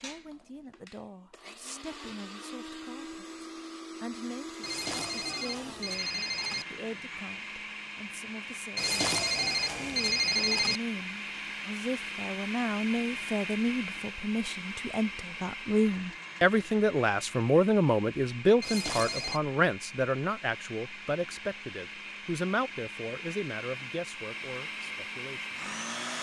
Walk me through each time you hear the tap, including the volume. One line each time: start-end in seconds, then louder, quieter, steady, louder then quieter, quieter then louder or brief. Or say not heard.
not heard.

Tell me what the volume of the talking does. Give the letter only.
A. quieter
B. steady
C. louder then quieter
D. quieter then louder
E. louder
C.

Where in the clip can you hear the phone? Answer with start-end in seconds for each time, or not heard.
4.6-6.7, 8.8-10.8, 18.6-19.4.